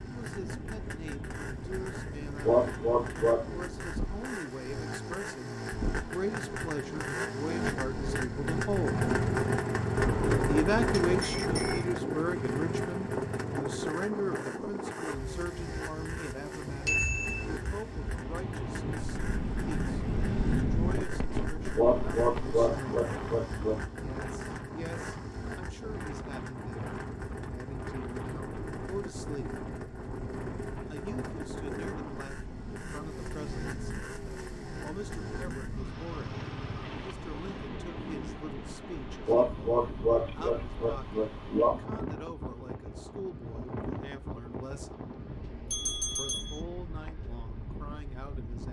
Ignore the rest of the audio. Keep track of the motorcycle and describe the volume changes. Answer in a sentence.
The volume of the motorcycle goes up, then down.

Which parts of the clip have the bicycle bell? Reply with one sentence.
You can hear the bicycle bell from 9.9 to 11.8 s, from 16.9 to 17.4 s and from 45.7 to 46.6 s.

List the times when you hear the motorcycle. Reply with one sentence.
You can hear the motorcycle from 0.0 to 38.4 s.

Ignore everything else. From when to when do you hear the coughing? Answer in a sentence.
You can hear the coughing from 2.5 to 3.5 s, from 21.8 to 23.8 s and from 39.2 to 41.8 s.